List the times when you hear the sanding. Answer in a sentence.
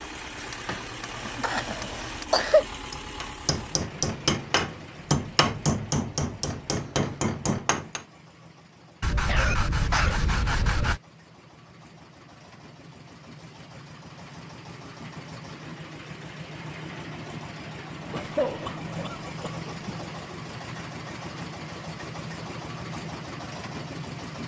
The sanding can be heard from 9.0 to 11.0 s.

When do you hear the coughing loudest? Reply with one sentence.
The volume of the coughing peaks at 2 seconds.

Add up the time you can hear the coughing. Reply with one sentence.
You can hear the coughing for 5 seconds altogether.